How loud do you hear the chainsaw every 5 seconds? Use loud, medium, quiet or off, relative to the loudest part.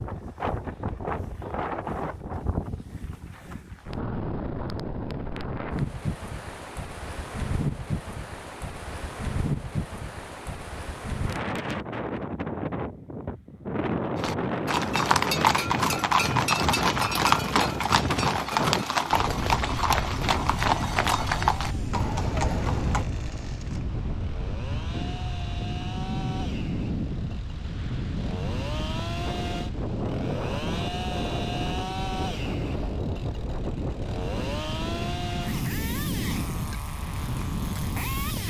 off, off, off, off, medium, loud, loud, loud.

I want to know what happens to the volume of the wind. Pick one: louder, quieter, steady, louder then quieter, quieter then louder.
steady.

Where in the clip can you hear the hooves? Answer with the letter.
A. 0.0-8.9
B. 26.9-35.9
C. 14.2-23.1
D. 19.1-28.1
C.